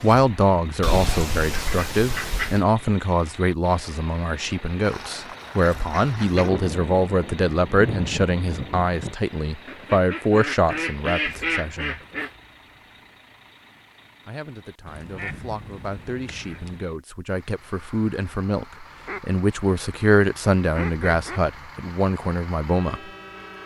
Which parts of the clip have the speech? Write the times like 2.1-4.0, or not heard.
0.0-12.0, 14.2-23.0.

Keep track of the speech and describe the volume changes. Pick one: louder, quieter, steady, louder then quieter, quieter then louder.
quieter then louder.